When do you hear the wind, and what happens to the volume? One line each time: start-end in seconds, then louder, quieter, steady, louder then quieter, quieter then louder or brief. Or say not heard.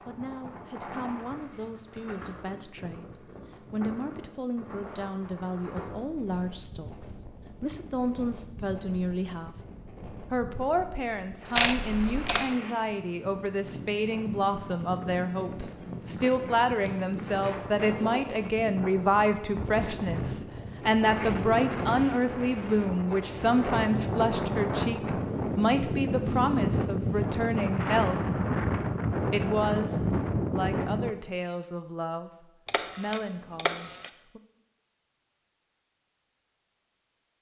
0.0-31.1 louder.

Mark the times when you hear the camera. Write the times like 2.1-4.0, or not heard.
11.6-12.5, 32.6-34.1.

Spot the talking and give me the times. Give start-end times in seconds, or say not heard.
0.1-9.6, 10.3-28.2, 29.3-34.4.